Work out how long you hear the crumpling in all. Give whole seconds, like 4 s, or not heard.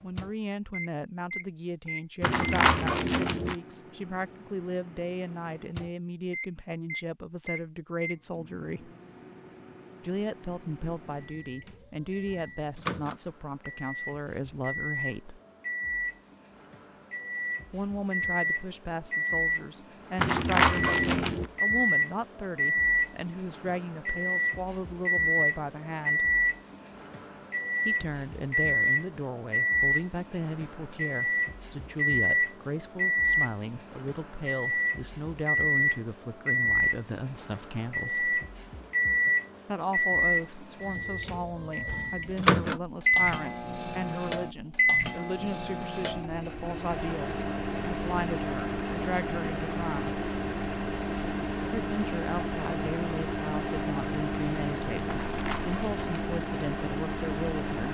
4 s.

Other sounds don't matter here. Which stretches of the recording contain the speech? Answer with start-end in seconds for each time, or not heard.
0.0-8.9, 10.0-15.4, 17.7-26.3, 27.9-38.4, 39.6-50.2, 51.7-57.9.